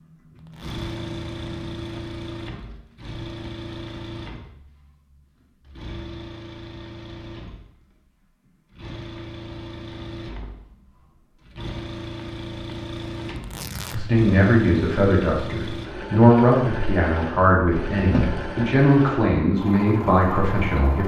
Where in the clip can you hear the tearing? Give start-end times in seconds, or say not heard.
0.3-0.8, 13.3-14.0.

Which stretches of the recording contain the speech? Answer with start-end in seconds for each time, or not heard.
13.9-21.0.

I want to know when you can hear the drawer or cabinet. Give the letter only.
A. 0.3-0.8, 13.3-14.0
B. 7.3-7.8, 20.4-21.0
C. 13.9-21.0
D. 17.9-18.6
D.